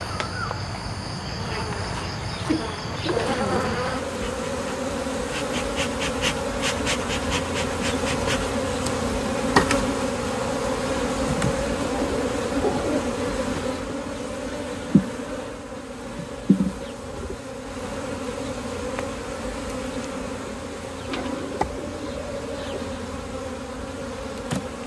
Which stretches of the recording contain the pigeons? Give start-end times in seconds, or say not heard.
1.9-3.8, 11.7-13.2, 21.1-22.9.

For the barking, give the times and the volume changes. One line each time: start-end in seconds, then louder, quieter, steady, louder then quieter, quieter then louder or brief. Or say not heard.
not heard.